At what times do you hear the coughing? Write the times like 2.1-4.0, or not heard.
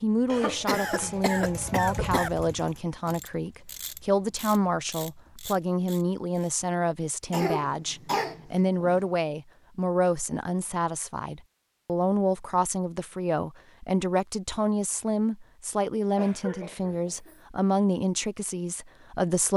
0.2-2.3, 7.3-9.0, 16.1-17.4.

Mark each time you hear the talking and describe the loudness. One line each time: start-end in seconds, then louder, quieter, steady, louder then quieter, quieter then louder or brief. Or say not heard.
0.0-19.5 steady.